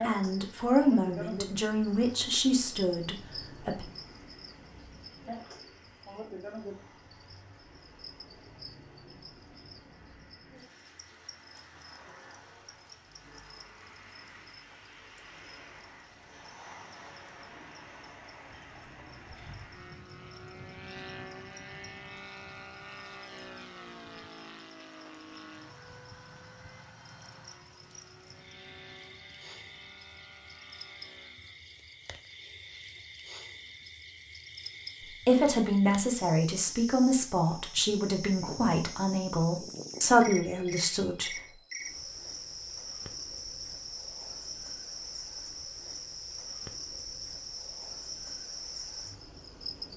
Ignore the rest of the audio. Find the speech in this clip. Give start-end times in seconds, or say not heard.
0.0-3.9, 35.0-41.4.